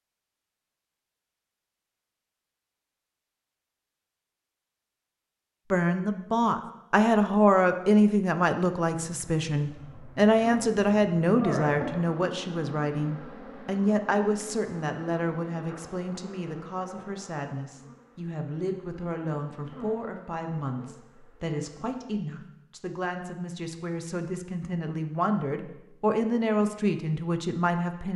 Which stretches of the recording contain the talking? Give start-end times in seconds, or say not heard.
5.7-28.1.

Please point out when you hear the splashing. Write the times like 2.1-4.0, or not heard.
not heard.